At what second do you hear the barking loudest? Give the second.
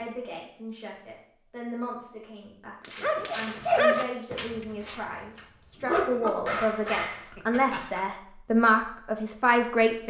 4 s.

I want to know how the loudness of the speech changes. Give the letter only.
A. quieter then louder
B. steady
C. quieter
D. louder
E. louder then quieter
D.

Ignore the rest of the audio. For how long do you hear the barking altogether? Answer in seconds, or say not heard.
5 s.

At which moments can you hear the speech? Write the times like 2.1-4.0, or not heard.
0.0-10.0.